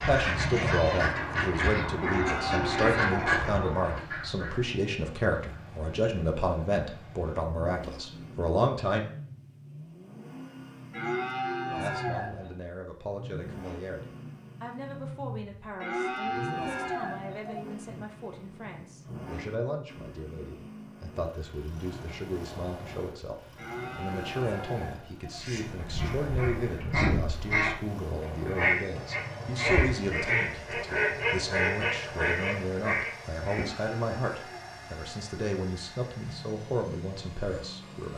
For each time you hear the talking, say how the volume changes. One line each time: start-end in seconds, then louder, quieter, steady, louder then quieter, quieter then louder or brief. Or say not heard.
0.0-9.1 steady
11.7-38.1 louder.